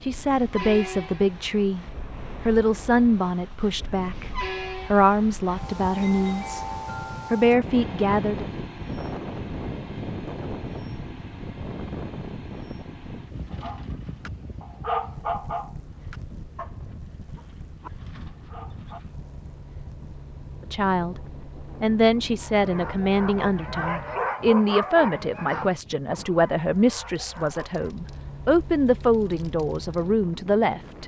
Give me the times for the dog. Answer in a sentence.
You can hear the dog from 13.4 to 19.0 s and from 22.4 to 27.9 s.